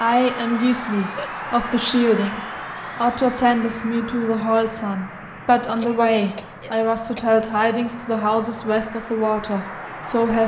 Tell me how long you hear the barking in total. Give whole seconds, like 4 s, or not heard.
not heard.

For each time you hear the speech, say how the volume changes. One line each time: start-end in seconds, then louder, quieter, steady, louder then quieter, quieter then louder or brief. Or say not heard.
0.0-10.4 steady.